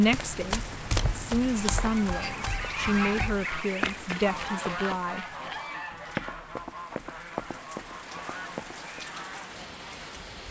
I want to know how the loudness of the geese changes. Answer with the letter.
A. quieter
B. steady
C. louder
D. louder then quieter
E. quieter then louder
A.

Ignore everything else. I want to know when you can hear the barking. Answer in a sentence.
The barking can't be heard in this clip.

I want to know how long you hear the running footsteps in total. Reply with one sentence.
You can hear the running footsteps for 9 seconds altogether.